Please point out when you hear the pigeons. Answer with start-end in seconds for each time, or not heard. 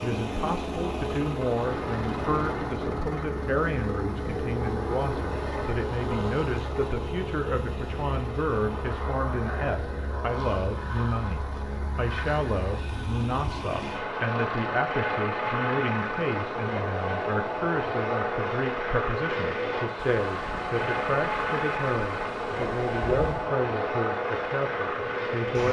not heard.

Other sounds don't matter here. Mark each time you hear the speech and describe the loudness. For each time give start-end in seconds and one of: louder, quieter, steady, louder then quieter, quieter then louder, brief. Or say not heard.
0.0-25.6 steady.